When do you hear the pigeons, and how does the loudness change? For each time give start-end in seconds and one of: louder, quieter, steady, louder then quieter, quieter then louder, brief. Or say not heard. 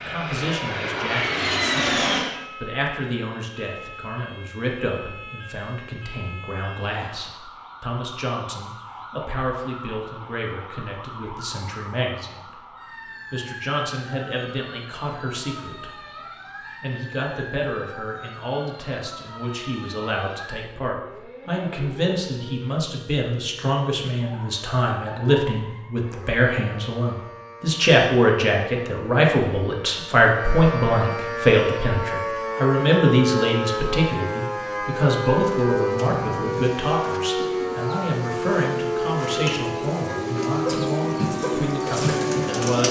35.5-42.8 louder.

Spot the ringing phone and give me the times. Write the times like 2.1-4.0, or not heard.
36.0-36.8.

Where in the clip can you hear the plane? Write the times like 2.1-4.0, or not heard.
0.0-2.4.